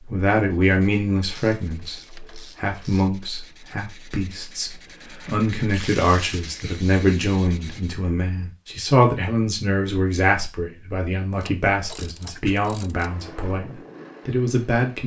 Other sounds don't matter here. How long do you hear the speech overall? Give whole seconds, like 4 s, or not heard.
15 s.